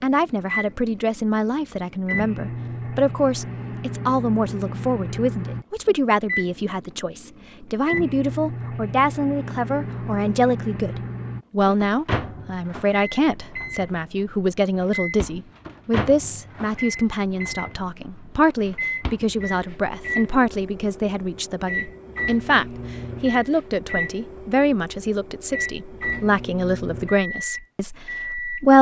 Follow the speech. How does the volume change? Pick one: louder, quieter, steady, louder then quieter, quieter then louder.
steady.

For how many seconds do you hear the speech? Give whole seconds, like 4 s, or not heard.
29 s.